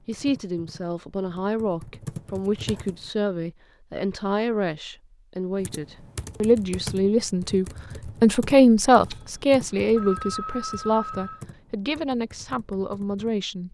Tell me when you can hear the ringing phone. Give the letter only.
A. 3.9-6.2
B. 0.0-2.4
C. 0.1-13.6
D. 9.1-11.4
D.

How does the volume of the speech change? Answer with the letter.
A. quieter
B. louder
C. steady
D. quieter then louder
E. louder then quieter
E.